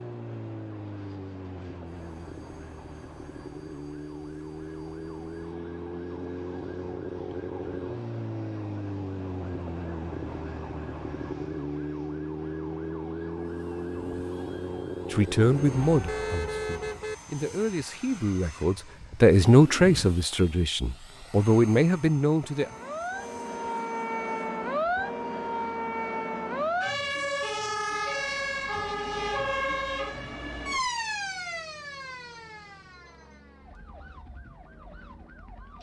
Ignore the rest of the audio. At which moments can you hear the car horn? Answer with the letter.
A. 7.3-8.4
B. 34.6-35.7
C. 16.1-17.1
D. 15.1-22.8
C.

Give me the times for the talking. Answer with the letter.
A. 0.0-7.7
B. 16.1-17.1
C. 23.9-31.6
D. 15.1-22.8
D.